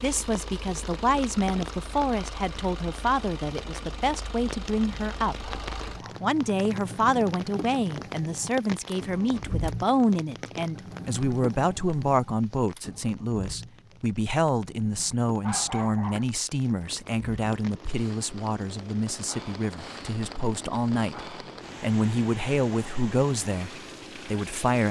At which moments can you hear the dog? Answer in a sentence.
You can hear the dog from 5.4 to 6.2 s and from 15.4 to 16.4 s.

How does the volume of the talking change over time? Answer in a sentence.
The loudness of the talking stays about the same.